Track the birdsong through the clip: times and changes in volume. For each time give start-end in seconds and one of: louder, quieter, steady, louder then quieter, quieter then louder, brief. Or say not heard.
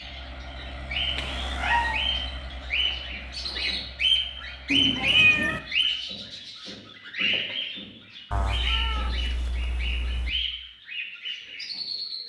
0.0-12.2 louder then quieter.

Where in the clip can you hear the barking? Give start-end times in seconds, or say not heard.
not heard.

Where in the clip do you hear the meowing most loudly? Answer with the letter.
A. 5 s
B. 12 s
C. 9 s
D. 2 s
A.